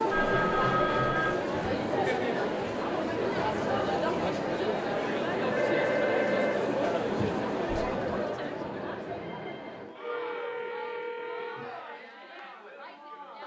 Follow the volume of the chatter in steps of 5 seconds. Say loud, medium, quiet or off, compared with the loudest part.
loud, loud, quiet.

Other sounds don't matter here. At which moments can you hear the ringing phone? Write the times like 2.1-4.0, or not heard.
0.1-1.4, 5.5-7.3, 9.2-11.7.